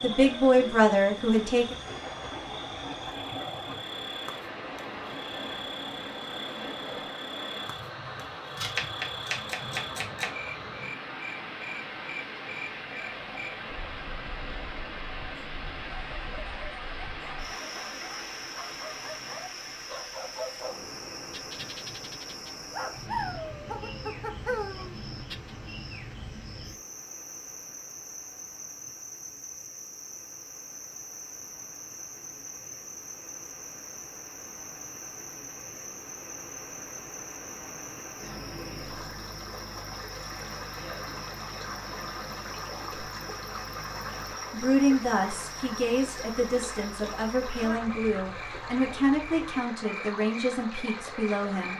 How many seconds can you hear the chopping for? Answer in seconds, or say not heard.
2 s.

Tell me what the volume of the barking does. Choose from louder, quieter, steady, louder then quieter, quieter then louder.
louder.